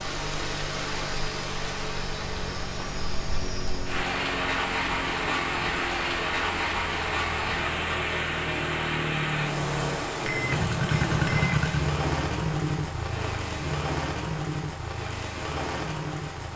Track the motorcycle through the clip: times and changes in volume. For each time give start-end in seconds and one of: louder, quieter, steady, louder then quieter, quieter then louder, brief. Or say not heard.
0.0-16.5 louder then quieter.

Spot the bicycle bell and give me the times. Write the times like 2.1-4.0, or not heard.
10.2-11.8.